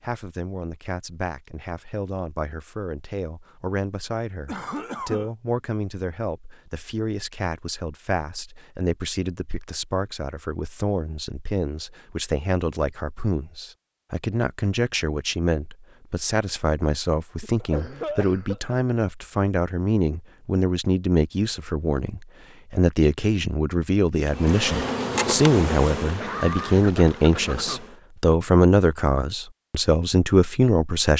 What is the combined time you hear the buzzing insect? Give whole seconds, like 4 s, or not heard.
4 s.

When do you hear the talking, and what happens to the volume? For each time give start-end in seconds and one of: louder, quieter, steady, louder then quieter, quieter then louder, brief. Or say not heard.
0.0-31.1 louder.